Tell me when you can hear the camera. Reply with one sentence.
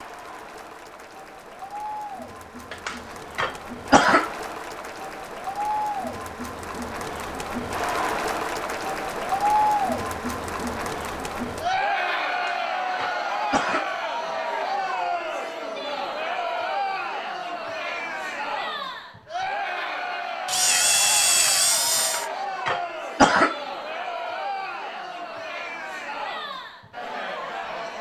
You can hear the camera from 20.4 to 22.2 s.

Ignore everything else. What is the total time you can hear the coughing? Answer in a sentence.
The coughing can be heard for 5 seconds in total.